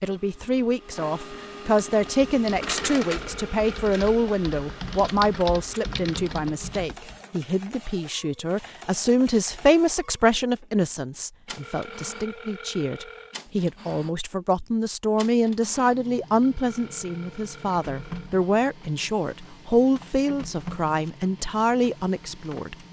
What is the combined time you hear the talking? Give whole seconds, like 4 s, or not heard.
23 s.